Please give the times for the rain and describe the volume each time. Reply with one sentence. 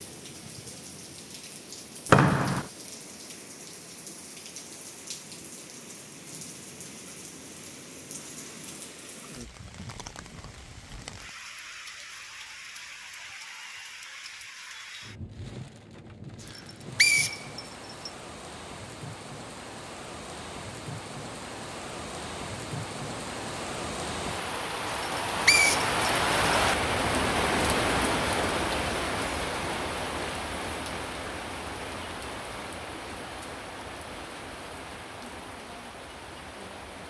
The rain can be heard from 0.0 to 37.0 s, getting louder then quieter.